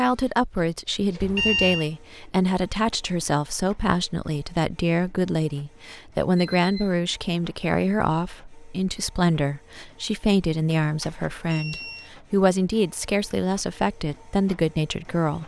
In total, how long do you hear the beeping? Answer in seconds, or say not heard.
3 s.